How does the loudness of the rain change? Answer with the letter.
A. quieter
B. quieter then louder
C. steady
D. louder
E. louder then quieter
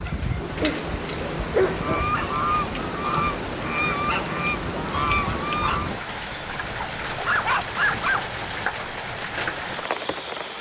C.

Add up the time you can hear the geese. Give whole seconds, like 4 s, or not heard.
4 s.